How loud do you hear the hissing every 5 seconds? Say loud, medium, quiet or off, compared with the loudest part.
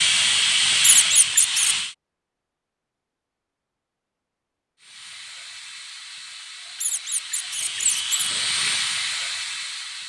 loud, medium.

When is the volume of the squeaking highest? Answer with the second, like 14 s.
1 s.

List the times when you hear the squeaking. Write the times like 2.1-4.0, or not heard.
0.8-1.8, 6.8-8.1.